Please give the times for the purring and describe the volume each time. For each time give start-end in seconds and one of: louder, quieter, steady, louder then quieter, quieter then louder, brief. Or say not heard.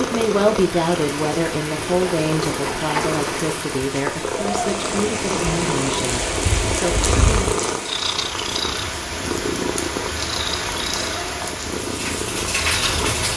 0.0-13.3 steady.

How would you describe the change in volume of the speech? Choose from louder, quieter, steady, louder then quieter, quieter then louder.
quieter.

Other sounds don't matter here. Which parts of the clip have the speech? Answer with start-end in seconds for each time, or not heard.
0.0-7.5.